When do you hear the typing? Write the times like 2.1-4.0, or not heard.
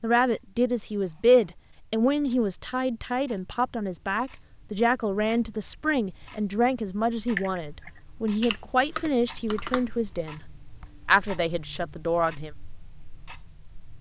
7.2-9.8.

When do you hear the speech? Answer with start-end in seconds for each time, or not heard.
0.0-10.4, 11.1-12.5.